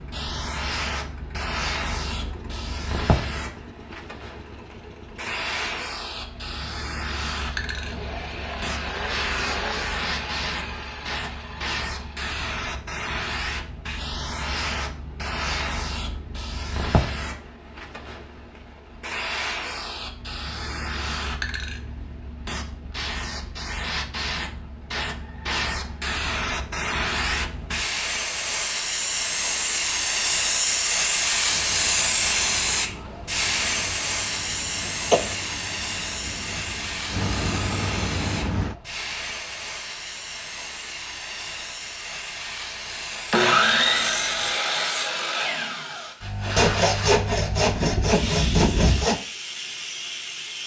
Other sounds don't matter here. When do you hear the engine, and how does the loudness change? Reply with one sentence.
The engine can be heard from 0.0 to 12.2 s, getting louder; and from 31.4 to 38.8 s, getting louder.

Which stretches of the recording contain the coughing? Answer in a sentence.
You can hear the coughing from 34.9 to 35.4 s.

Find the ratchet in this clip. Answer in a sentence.
The ratchet can't be heard in this clip.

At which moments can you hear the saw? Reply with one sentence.
The saw can be heard from 43.3 to 49.1 s.